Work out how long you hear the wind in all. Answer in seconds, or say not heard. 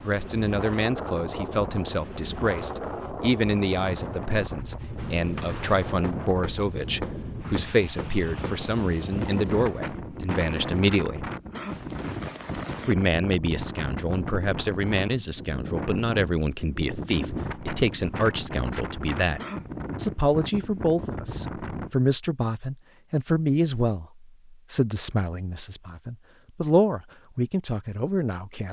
22 s.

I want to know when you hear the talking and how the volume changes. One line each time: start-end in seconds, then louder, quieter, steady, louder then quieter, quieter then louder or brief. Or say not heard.
0.1-11.3 steady
12.8-28.6 steady.